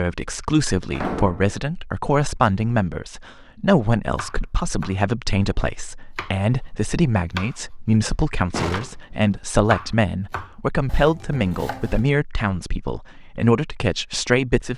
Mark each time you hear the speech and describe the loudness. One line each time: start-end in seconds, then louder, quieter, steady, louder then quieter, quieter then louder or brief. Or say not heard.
0.0-14.7 steady.